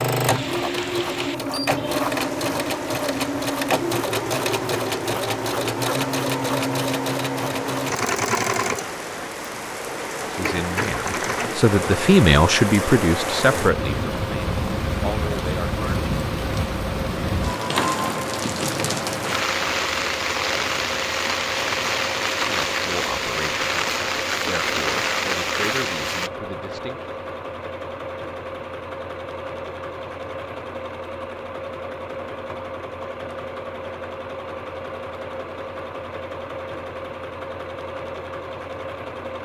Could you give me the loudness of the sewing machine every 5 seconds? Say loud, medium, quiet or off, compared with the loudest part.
loud, loud, medium, medium, medium, medium, medium, medium.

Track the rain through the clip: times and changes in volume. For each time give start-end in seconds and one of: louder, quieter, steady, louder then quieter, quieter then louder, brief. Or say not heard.
0.0-26.3 louder.